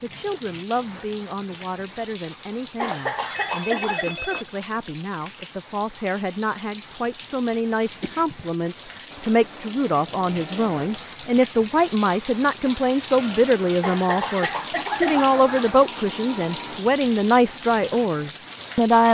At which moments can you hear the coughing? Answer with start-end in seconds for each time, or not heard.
2.8-4.0, 8.0-8.4, 13.8-15.8.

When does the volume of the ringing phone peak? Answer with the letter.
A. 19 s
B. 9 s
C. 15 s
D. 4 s
D.